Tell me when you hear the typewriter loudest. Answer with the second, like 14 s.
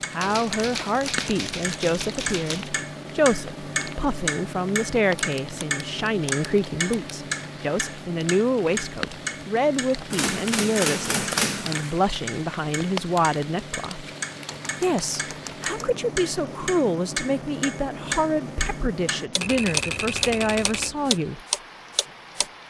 11 s.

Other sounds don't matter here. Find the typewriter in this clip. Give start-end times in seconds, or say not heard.
0.2-2.7, 5.2-7.2, 10.1-11.9, 14.4-15.8, 19.4-20.9.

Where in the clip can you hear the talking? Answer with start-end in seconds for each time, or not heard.
0.1-14.1, 14.8-21.4.